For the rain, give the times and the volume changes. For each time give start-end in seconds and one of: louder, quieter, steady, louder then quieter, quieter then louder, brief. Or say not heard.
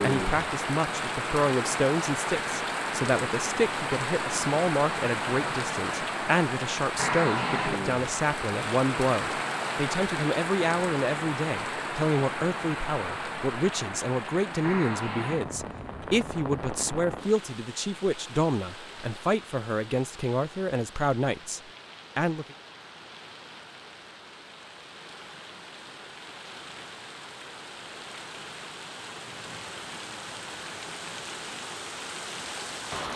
0.0-33.1 quieter then louder.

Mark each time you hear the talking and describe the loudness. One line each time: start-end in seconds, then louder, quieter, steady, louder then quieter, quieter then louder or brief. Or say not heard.
0.0-22.6 steady.